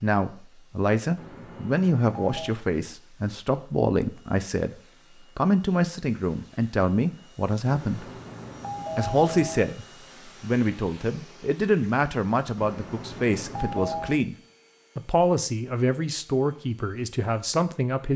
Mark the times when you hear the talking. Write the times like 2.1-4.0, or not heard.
0.0-8.1, 8.9-14.3, 14.9-18.1.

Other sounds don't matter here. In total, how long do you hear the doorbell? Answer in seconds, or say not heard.
5 s.